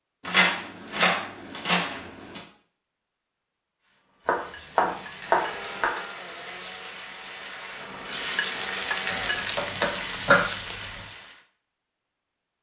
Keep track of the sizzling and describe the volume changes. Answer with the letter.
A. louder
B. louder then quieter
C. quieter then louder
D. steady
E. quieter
A.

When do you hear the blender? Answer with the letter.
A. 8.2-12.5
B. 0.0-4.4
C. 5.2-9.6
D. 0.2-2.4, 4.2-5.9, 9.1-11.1
C.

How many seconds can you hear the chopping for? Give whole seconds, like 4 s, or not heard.
6 s.